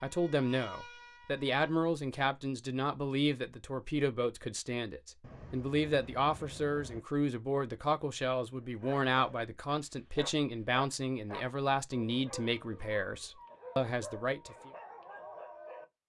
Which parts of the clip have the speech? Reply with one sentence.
You can hear the speech from 0.0 to 14.7 s.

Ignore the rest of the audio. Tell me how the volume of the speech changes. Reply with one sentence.
The loudness of the speech stays about the same.